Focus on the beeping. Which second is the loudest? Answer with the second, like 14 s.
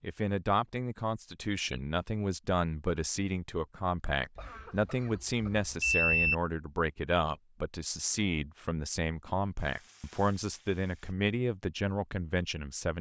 6 s.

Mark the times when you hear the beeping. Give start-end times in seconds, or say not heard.
4.3-6.3.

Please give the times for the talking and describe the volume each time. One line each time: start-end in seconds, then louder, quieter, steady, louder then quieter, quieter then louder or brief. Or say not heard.
0.0-12.9 steady.